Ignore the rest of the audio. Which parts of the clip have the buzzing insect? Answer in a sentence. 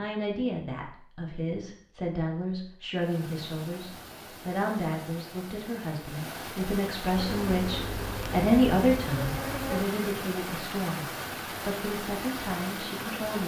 You can hear the buzzing insect from 7.2 to 9.8 s.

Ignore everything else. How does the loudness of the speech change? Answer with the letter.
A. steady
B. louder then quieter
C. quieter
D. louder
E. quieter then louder
B.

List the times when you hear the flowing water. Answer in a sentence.
You can hear the flowing water from 3.0 to 13.4 s.